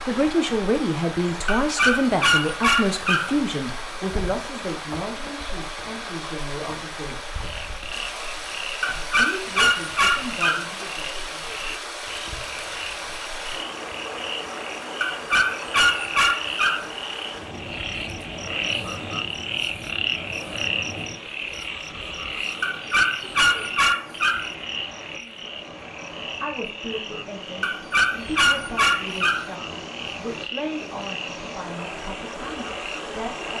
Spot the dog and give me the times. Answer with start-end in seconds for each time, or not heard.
1.4-3.4, 8.8-10.7, 15.0-16.9, 22.6-24.5, 27.6-29.5.